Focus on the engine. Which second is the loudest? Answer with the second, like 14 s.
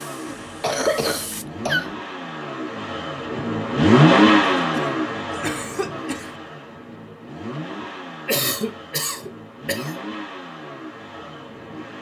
4 s.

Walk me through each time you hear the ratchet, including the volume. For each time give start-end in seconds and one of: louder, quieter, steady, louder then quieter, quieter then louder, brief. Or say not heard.
not heard.